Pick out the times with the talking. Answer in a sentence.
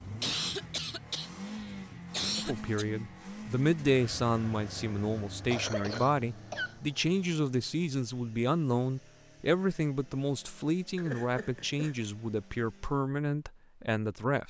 You can hear the talking from 2.4 to 14.4 s.